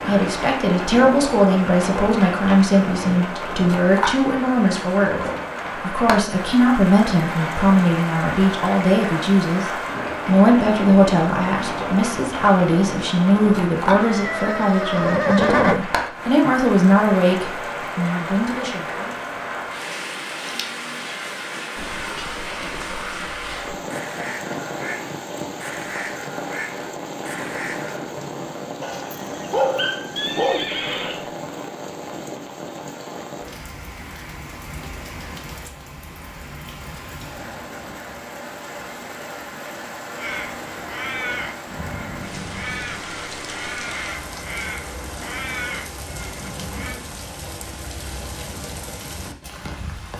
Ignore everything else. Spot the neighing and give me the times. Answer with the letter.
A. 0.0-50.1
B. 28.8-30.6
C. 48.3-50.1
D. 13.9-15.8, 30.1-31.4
D.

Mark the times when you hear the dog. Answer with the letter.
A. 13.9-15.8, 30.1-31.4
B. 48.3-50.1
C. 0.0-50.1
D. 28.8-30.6
D.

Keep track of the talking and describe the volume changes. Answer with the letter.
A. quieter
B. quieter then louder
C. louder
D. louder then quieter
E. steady
E.